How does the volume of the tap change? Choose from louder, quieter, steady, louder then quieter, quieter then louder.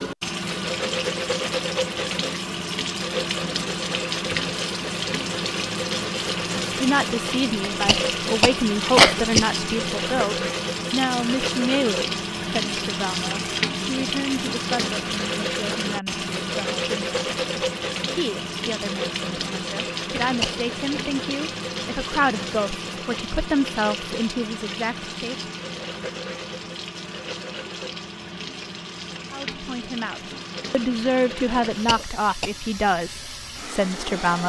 quieter.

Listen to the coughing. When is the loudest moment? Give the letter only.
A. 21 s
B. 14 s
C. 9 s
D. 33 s
C.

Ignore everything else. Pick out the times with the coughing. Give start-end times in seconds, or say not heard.
7.7-9.5, 20.1-21.0, 31.6-32.5.